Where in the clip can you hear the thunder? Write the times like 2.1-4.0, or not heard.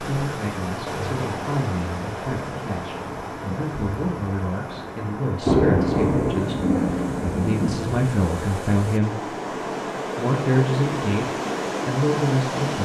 5.4-8.1.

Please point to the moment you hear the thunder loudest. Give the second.
6 s.